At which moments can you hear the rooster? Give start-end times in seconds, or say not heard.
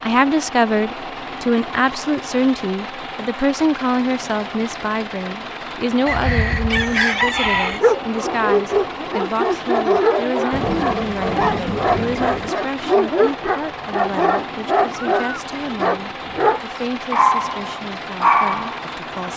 6.0-7.8.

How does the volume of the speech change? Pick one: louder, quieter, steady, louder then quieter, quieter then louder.
quieter.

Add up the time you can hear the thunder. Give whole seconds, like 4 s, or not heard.
2 s.